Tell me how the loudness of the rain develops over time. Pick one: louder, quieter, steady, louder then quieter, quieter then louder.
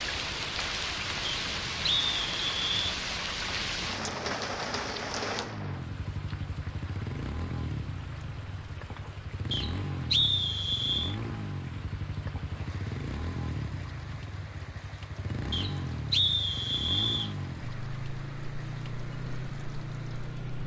quieter.